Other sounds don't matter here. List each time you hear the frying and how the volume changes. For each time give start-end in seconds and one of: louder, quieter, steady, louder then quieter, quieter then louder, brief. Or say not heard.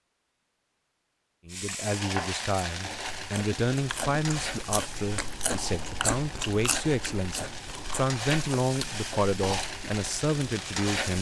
1.5-11.1 quieter then louder.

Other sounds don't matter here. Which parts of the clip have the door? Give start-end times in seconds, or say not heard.
not heard.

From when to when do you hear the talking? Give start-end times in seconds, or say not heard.
1.4-11.1.